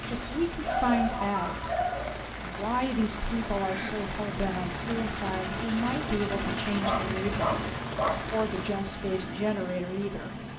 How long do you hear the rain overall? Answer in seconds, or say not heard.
9 s.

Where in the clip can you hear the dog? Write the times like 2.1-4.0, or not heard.
0.6-2.3, 6.8-8.3.